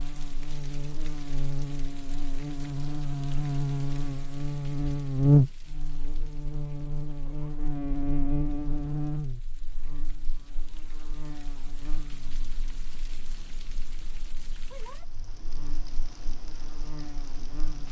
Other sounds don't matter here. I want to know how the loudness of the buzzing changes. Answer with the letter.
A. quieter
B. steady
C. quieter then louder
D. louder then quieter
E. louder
D.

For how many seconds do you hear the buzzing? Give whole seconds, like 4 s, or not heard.
18 s.